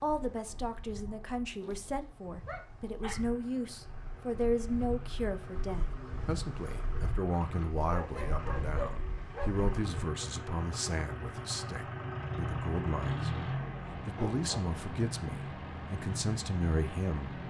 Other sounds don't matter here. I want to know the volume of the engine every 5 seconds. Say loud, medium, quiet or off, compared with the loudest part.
quiet, medium, loud, loud.